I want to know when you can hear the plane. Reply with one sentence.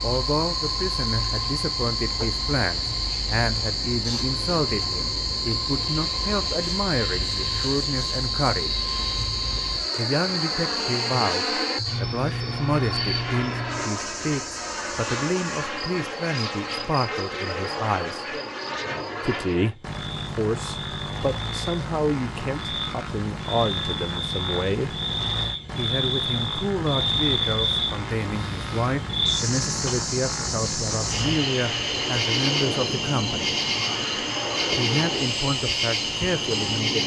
You can hear the plane from 0.0 to 37.0 s.